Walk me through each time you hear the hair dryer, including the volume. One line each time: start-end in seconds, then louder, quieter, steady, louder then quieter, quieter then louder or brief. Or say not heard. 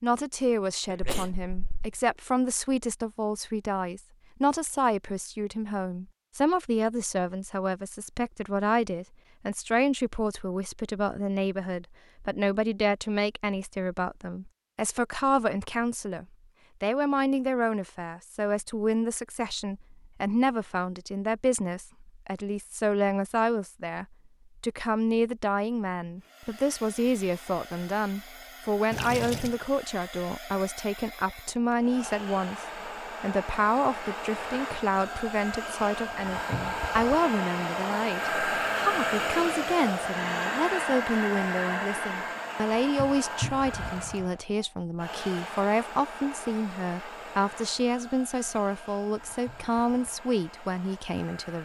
26.2-51.6 louder then quieter.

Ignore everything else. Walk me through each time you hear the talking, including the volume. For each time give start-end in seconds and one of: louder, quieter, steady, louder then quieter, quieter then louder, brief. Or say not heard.
0.0-51.6 steady.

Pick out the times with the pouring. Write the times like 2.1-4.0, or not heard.
28.9-29.6.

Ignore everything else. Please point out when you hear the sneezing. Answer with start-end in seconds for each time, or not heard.
0.8-1.9.